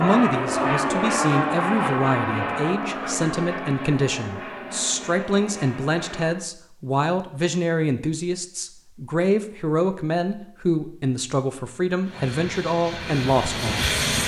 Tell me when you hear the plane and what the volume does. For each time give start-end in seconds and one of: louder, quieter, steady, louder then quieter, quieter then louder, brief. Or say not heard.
0.0-6.5 quieter
12.0-14.2 brief.